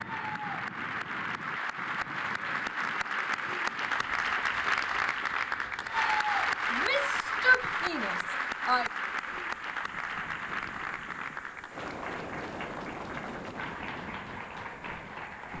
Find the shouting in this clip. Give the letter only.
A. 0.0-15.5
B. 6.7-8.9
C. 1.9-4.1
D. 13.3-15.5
B.